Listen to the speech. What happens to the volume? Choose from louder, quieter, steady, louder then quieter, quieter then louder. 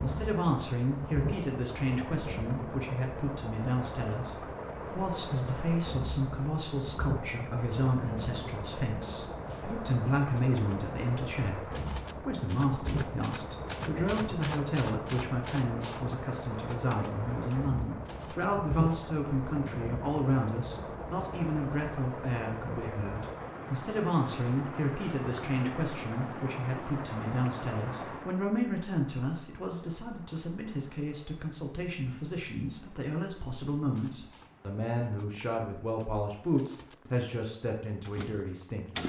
steady.